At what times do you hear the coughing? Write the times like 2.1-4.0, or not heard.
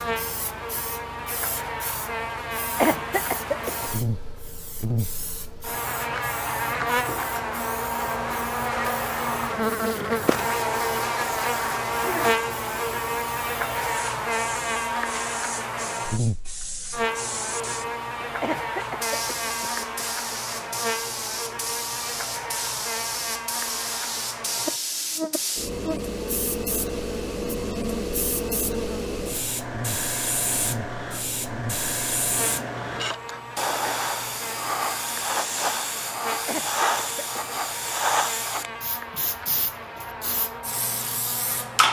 2.6-3.9, 18.2-19.9, 36.3-37.4.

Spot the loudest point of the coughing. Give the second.
3 s.